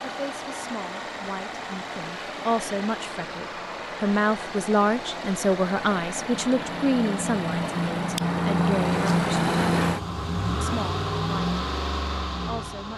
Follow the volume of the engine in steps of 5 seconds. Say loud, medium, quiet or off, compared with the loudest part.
medium, loud, loud.